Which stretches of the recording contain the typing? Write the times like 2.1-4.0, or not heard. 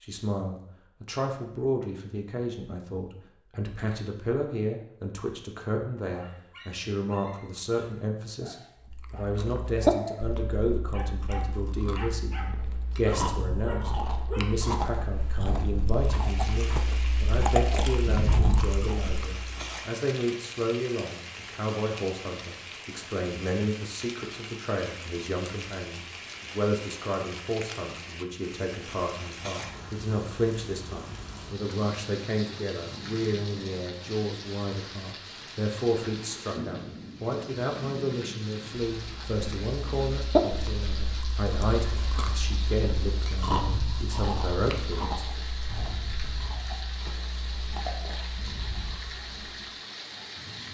not heard.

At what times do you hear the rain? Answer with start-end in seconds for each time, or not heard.
15.9-50.6.